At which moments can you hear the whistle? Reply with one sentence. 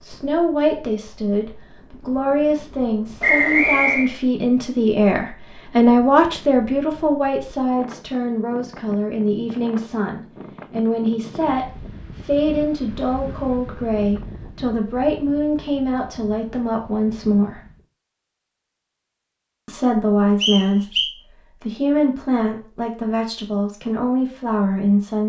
The whistle can be heard from 3.2 to 4.1 s and from 20.4 to 21.1 s.